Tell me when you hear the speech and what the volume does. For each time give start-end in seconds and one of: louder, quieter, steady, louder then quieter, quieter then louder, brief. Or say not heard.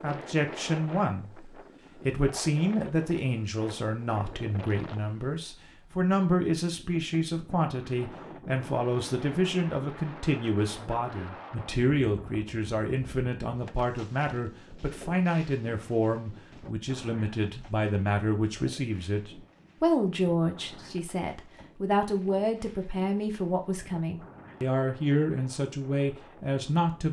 0.0-27.0 steady.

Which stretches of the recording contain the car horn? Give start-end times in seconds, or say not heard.
not heard.